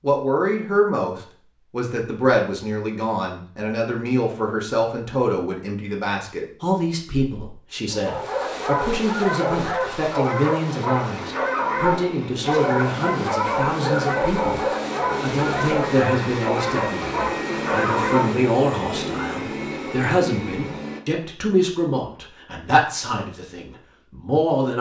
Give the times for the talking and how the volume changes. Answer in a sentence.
You can hear the talking from 0.0 to 24.7 s, at a steady volume.